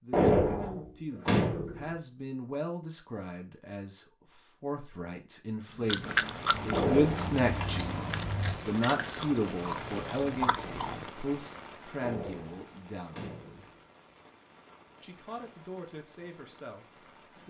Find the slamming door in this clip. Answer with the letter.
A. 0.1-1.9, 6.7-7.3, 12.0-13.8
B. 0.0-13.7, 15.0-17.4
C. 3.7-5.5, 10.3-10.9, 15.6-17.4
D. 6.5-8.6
A.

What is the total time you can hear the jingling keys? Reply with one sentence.
The jingling keys can be heard for 2 seconds in total.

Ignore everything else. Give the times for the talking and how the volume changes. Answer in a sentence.
You can hear the talking from 0.0 to 13.7 s, getting louder then quieter; and briefly from 15.0 to 17.4 s.